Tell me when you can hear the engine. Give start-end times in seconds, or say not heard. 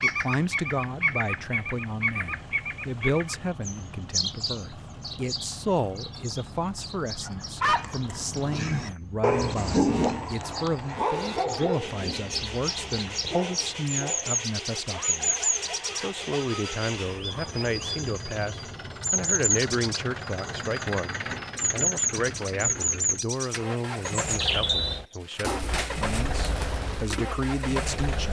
0.0-28.2.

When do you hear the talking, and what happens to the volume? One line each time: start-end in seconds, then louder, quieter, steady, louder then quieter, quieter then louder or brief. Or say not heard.
0.0-28.2 steady.